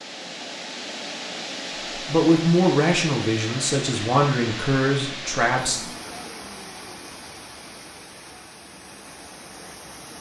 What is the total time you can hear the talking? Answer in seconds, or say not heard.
4 s.